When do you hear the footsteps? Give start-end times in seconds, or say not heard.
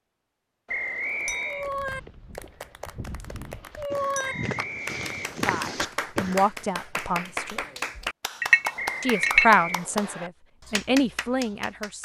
1.2-6.5.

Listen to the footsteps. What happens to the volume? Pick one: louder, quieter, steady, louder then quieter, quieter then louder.
louder.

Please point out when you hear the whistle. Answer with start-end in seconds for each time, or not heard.
0.7-1.7, 4.2-5.8, 8.8-10.3.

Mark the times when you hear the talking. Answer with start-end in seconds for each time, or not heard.
5.5-7.6, 9.0-11.9.